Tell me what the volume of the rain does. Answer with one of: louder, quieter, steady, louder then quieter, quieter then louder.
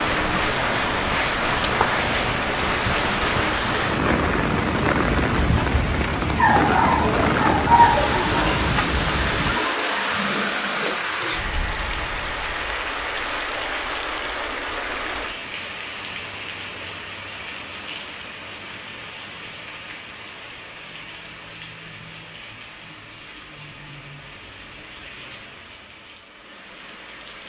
quieter.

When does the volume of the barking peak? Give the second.
8 s.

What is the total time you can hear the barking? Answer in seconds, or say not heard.
2 s.